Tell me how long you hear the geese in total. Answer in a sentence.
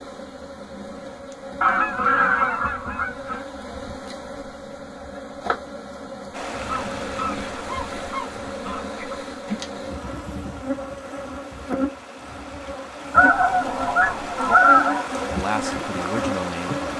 You can hear the geese for 6 seconds altogether.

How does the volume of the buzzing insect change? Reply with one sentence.
The loudness of the buzzing insect goes up.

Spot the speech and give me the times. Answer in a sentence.
You can hear the speech from 15.3 to 16.9 s.